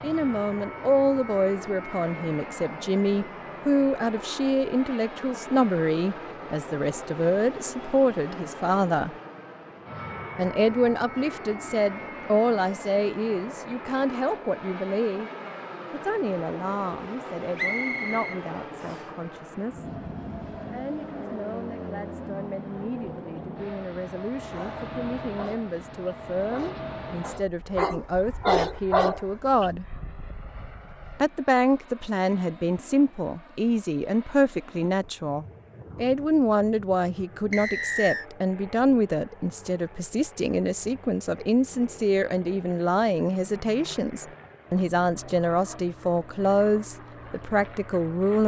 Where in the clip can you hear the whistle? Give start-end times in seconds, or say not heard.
17.6-19.1, 37.5-38.2.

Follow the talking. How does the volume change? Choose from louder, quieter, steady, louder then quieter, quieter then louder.
quieter then louder.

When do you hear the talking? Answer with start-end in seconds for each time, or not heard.
0.0-9.1, 10.3-15.3, 15.9-19.9, 20.7-29.9, 31.2-48.4.